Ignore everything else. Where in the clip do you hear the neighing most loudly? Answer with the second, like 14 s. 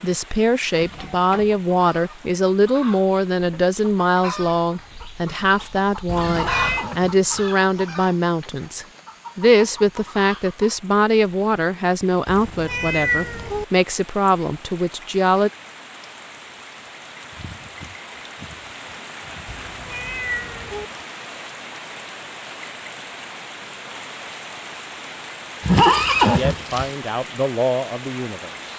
26 s.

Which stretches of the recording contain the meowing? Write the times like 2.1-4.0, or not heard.
6.0-6.8, 12.2-13.7, 19.4-20.9.